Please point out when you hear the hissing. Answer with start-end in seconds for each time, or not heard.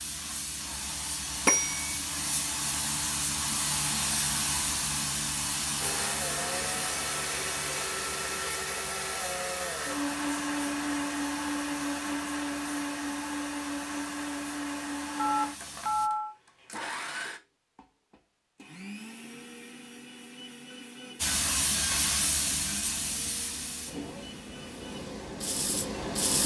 0.0-16.1, 21.2-26.4.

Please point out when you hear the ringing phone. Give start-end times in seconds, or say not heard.
1.4-1.9, 15.2-16.4.